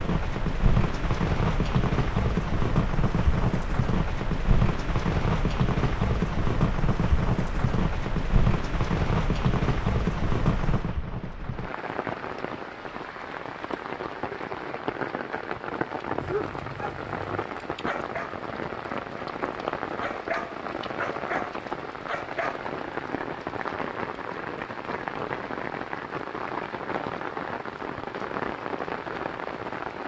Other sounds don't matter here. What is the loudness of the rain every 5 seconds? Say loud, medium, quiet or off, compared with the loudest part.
loud, loud, medium, medium, medium, medium.